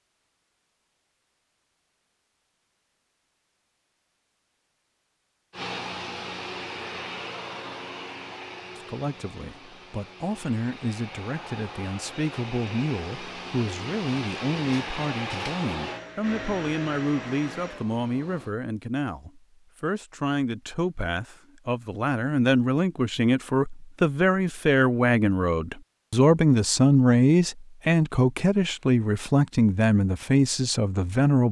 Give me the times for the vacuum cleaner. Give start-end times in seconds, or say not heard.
5.5-18.6.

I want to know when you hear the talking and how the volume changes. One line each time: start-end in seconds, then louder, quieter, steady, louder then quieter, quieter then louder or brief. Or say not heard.
8.8-31.4 louder.